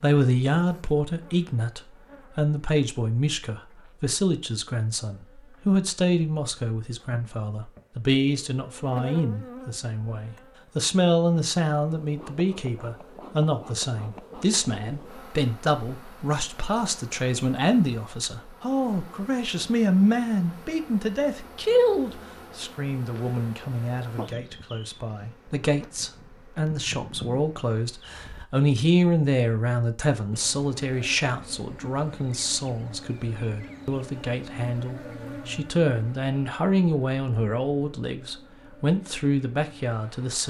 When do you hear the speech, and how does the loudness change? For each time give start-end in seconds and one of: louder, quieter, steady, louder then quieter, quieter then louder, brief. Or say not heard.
0.0-40.4 steady.